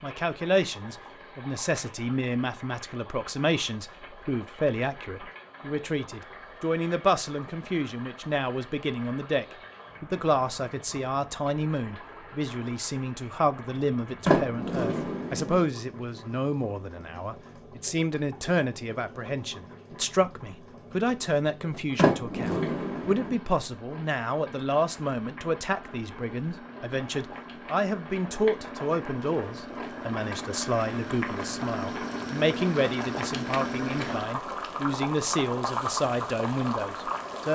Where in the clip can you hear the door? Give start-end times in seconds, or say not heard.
14.2-15.6, 21.9-23.4.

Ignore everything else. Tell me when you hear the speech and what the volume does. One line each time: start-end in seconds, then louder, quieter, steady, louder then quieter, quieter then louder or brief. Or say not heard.
0.0-37.5 steady.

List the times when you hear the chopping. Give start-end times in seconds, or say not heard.
not heard.